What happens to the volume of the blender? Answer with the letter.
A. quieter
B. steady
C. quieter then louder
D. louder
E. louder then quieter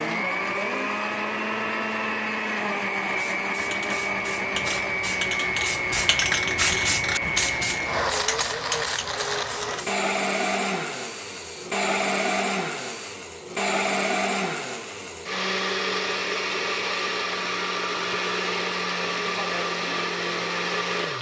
B.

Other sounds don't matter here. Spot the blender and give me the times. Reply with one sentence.
You can hear the blender from 0.0 to 21.1 s.